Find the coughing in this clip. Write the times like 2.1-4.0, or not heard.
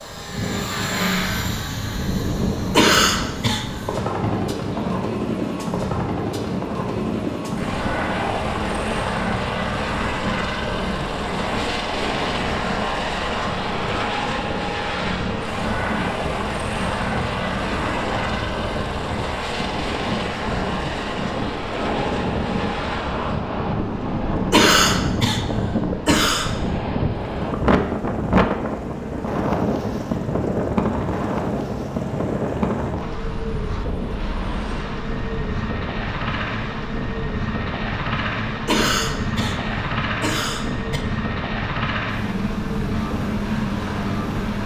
2.7-3.6, 24.4-25.4, 26.1-26.6, 38.5-39.5, 40.2-41.0.